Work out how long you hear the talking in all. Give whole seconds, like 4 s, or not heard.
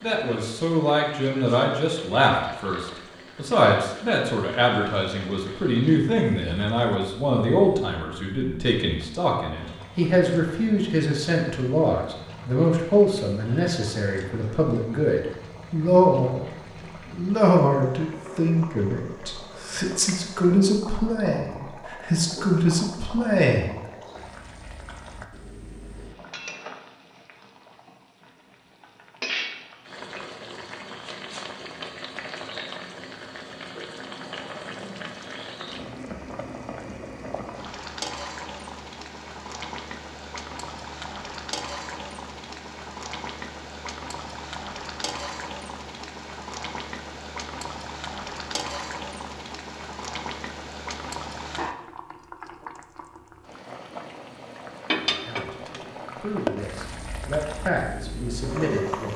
28 s.